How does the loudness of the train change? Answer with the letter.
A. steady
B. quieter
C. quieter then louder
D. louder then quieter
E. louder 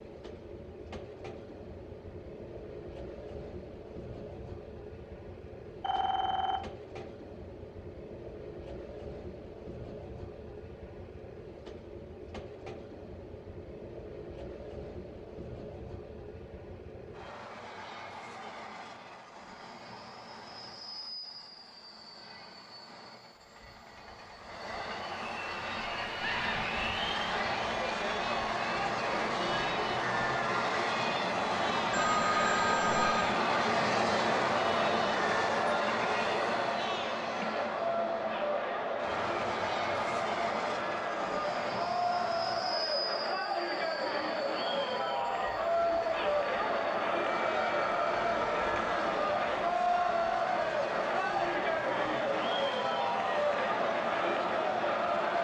D.